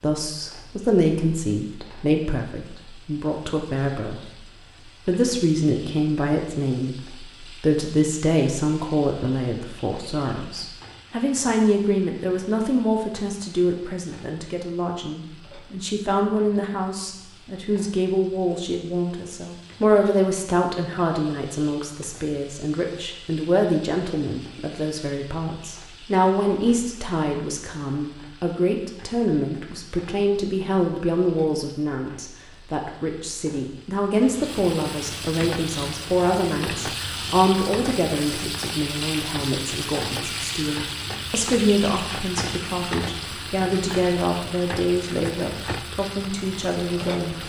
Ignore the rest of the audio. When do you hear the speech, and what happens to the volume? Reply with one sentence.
You can hear the speech from 0.0 to 4.2 s, getting quieter then louder; and from 5.0 to 47.4 s, at a steady volume.